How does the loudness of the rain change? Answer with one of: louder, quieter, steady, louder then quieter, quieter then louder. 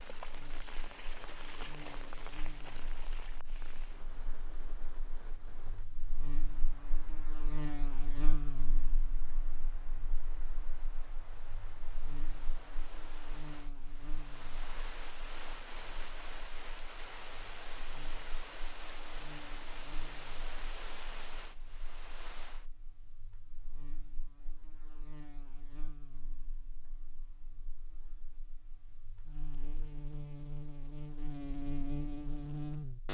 quieter then louder.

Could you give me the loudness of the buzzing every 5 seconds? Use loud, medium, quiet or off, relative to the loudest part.
quiet, medium, quiet, quiet, quiet, quiet, loud.